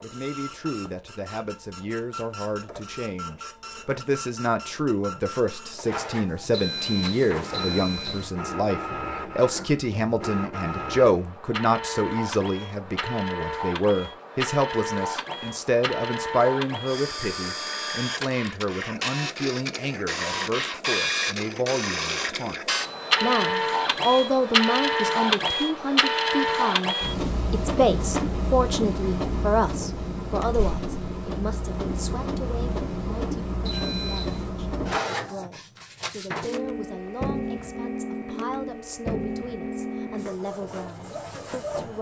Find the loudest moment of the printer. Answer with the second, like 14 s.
25 s.